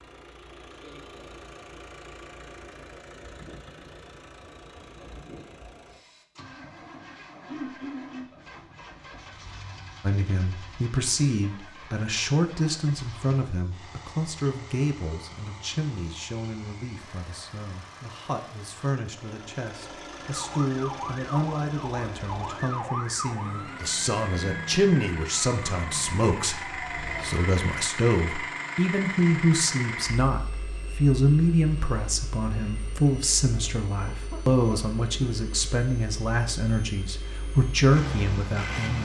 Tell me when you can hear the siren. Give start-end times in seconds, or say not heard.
20.1-27.5.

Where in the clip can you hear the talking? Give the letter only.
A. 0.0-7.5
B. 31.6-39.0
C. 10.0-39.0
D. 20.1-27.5
C.